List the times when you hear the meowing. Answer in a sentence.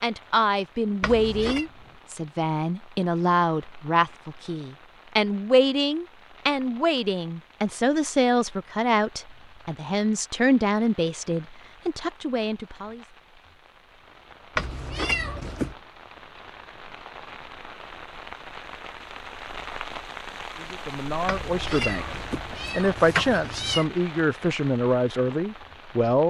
The meowing can be heard from 1.0 to 1.6 s, from 14.6 to 15.8 s and from 21.2 to 23.9 s.